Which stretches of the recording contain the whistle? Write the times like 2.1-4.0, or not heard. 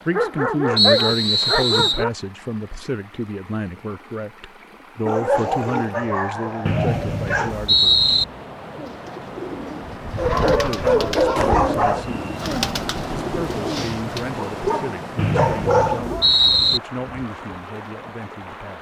0.8-2.0, 6.7-8.2, 15.2-16.8.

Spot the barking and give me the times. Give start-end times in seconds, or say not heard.
0.1-2.1, 5.0-7.5, 10.2-12.1, 14.3-16.2.